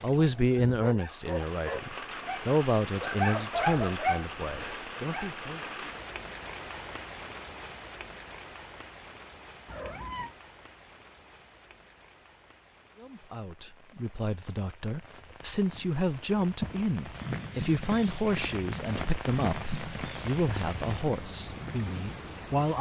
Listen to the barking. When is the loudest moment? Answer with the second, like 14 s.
4 s.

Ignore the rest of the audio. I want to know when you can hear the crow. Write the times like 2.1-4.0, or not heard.
not heard.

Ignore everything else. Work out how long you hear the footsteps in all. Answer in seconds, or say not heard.
7 s.